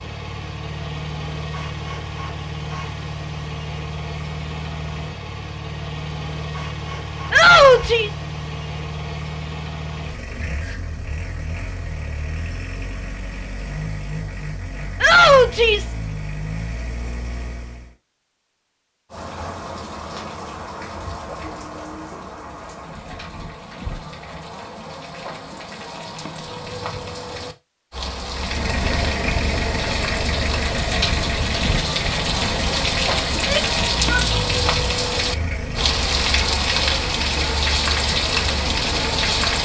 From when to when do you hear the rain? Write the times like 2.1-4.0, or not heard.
19.1-39.6.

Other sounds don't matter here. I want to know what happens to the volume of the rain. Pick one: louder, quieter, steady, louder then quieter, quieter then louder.
louder.